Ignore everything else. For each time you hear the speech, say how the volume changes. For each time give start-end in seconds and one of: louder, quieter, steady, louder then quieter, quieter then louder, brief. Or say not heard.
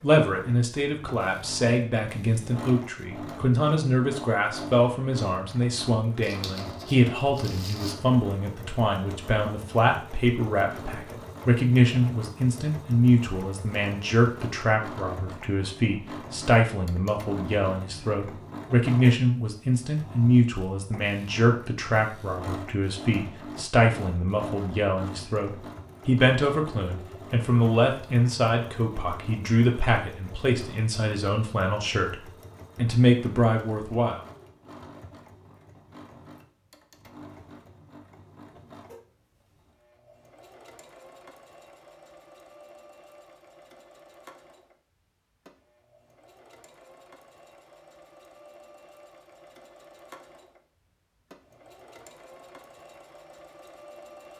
0.0-34.2 steady.